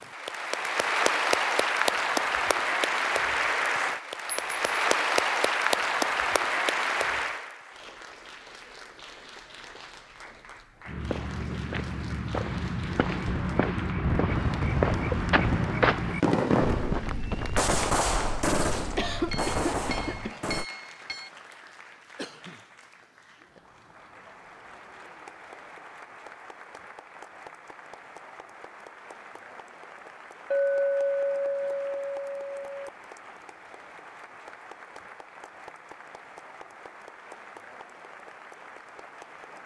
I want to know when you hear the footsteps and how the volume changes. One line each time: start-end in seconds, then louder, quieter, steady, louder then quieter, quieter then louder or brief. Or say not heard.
10.8-20.3 louder then quieter.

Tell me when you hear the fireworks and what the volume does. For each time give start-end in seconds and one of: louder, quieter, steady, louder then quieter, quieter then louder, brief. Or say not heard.
13.2-20.6 louder then quieter.